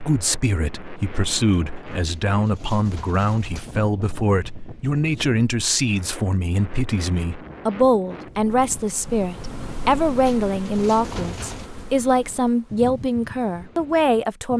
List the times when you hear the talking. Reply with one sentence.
You can hear the talking from 0.0 to 14.5 s.